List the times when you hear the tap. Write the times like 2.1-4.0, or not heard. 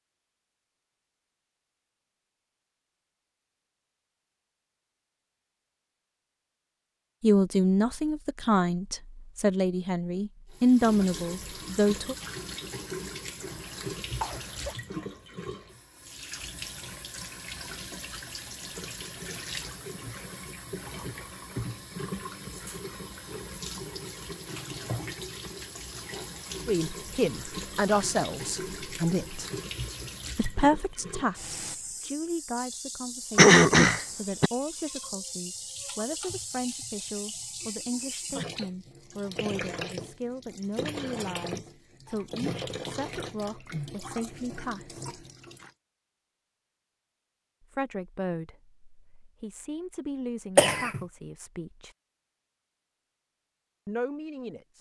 10.5-45.7.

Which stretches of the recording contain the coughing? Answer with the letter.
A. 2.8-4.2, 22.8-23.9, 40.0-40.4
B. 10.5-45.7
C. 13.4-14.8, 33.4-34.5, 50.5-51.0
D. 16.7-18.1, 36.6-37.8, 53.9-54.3
C.